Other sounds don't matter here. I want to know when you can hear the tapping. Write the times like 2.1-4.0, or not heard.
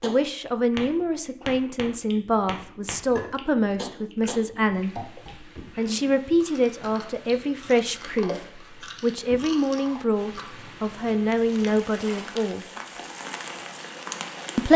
0.0-5.3.